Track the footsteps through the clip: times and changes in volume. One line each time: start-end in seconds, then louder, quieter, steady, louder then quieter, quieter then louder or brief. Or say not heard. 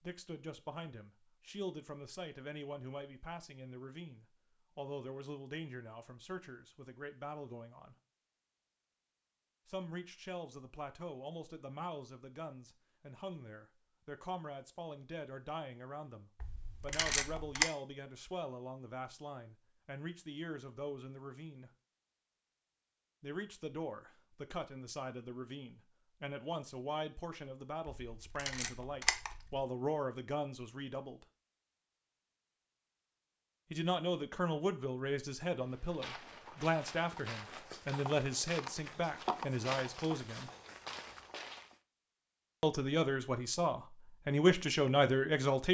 35.5-41.8 louder then quieter.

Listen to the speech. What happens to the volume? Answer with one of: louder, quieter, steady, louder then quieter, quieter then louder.
louder.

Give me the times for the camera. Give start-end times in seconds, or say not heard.
16.4-17.6, 28.1-29.6.